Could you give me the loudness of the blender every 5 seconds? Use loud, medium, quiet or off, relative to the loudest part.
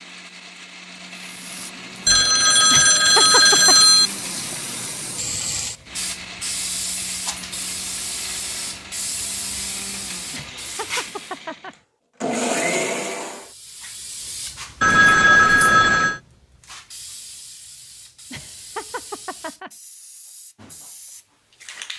medium, medium, loud, off, off.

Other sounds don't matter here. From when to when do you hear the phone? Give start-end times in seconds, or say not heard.
2.0-4.1, 14.8-16.2.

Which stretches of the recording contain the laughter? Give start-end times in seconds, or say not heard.
2.7-3.8, 10.3-11.8, 18.3-19.7.